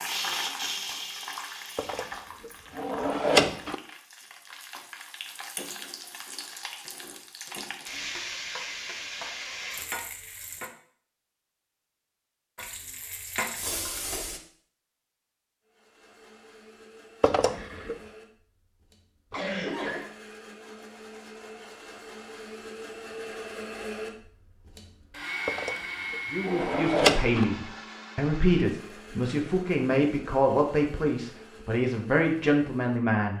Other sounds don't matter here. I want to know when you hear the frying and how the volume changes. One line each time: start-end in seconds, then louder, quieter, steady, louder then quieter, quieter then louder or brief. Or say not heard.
0.0-10.7 quieter then louder
12.6-14.4 brief.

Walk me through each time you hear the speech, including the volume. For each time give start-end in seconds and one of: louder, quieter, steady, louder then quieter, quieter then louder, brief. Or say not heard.
26.3-33.3 steady.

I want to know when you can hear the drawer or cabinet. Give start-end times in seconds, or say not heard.
1.8-3.8, 17.2-18.0, 25.4-27.4.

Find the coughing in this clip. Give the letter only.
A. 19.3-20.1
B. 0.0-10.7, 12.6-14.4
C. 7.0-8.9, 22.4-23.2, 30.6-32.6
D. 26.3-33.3
A.